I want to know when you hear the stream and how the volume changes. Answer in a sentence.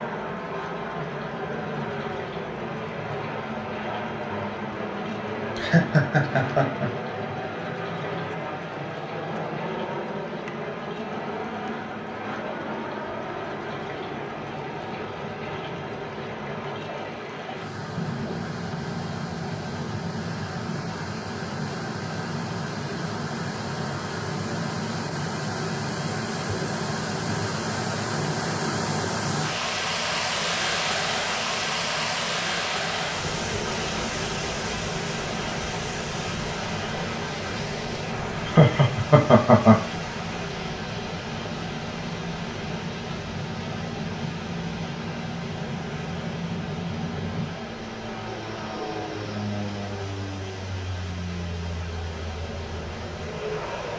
The stream can be heard from 0.0 to 53.9 s, getting louder then quieter.